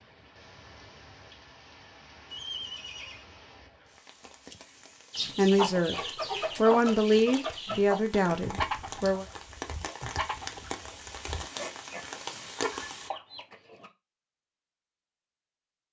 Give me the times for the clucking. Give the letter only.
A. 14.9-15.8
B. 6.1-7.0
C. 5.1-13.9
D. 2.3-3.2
C.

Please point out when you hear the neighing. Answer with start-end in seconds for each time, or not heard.
2.3-3.2.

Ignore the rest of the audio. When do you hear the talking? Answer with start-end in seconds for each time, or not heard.
5.2-6.0, 6.5-9.2.